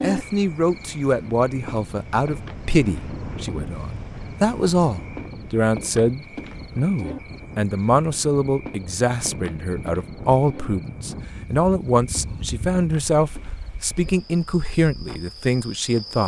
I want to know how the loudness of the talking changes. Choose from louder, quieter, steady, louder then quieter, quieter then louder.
steady.